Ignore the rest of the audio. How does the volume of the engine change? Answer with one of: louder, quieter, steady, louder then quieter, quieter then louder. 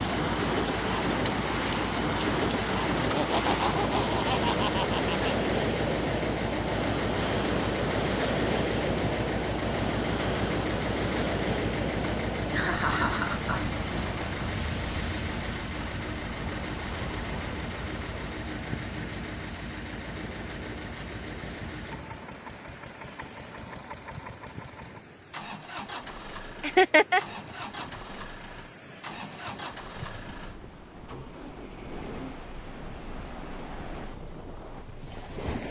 quieter.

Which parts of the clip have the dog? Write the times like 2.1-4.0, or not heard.
not heard.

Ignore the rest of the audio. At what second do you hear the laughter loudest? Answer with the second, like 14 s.
27 s.